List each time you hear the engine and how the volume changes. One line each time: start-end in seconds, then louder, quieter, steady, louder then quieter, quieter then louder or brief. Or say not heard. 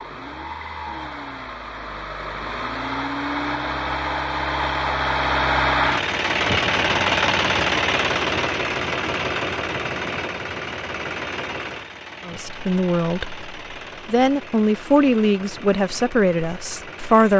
0.0-17.3 louder then quieter.